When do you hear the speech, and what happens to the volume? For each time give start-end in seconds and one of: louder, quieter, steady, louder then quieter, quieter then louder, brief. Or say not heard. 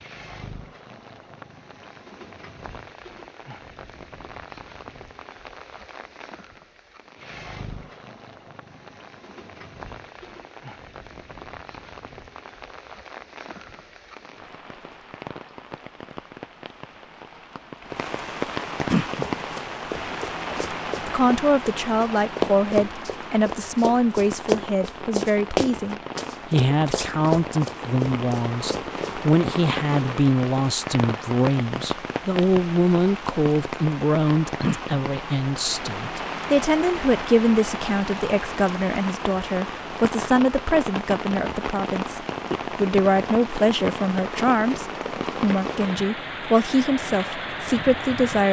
20.5-48.4 steady.